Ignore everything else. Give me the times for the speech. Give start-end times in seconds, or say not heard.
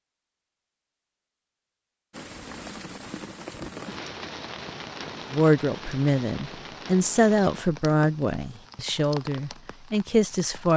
5.3-10.7.